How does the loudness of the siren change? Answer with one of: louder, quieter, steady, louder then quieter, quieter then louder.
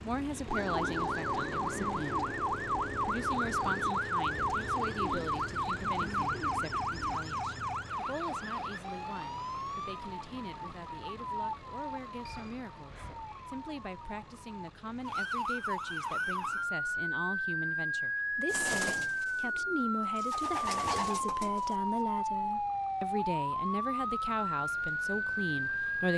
quieter then louder.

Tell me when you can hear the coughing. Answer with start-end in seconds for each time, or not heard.
not heard.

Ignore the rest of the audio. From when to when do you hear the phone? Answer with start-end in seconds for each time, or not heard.
12.2-13.2.